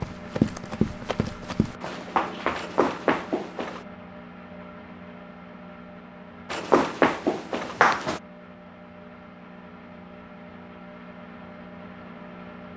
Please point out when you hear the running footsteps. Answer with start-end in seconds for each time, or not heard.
0.0-3.8, 6.5-8.2.